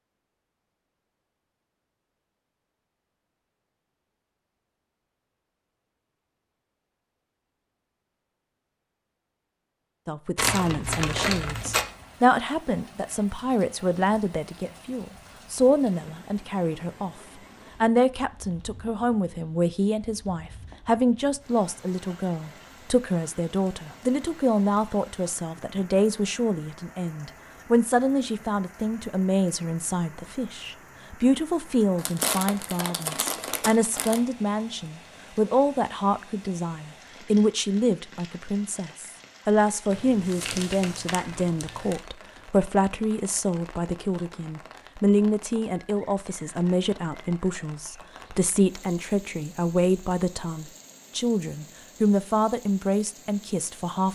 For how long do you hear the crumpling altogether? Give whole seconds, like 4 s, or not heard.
6 s.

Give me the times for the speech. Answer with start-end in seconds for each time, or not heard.
10.1-17.1, 17.8-54.1.